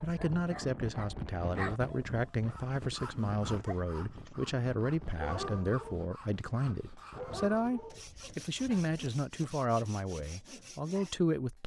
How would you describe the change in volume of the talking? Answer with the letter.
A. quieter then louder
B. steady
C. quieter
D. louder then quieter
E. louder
B.